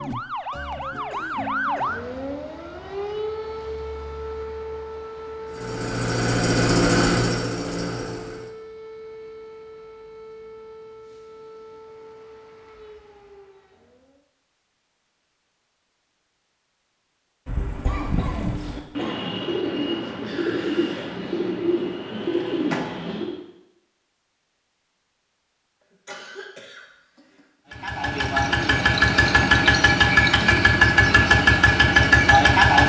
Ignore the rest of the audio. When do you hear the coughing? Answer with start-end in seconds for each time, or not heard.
1.1-2.0, 17.8-19.4, 26.1-27.4.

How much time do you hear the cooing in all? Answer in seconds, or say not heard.
6 s.